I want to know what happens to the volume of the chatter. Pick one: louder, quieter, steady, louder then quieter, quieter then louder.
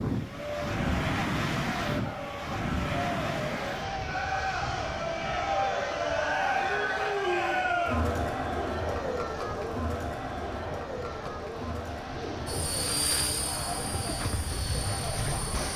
louder then quieter.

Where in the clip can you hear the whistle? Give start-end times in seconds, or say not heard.
not heard.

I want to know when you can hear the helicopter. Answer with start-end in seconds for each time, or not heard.
12.4-15.7.